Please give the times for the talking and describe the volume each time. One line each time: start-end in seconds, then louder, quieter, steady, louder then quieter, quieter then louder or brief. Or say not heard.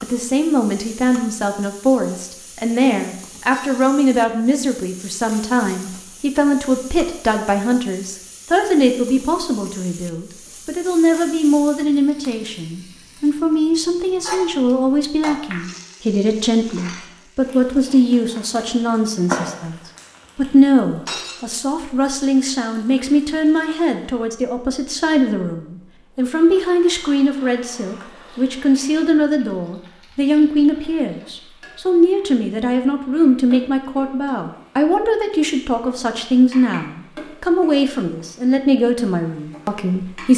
0.0-19.8 steady
20.4-40.3 steady.